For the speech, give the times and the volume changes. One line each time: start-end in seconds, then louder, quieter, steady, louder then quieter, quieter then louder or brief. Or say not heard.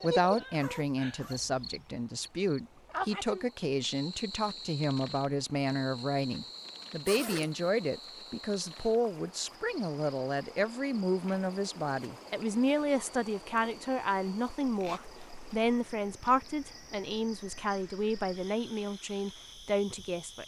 0.0-20.4 steady.